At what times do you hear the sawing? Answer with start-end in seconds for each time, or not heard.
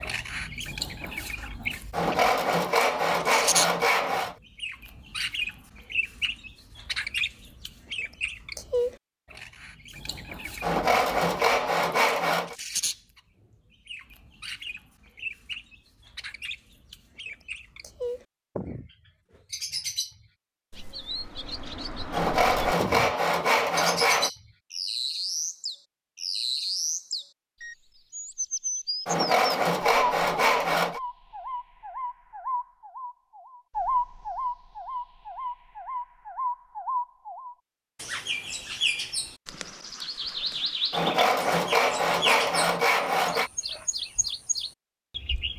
1.9-4.3, 10.6-12.6, 22.1-24.3, 29.1-31.0, 40.9-43.5.